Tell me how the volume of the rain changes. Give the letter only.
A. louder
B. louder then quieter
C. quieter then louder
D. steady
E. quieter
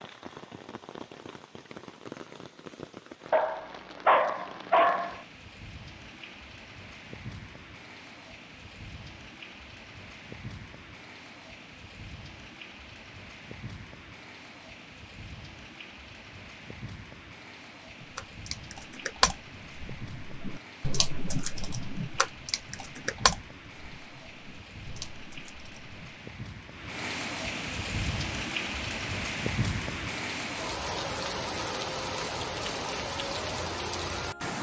A.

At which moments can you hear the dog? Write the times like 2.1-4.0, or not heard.
3.3-5.2.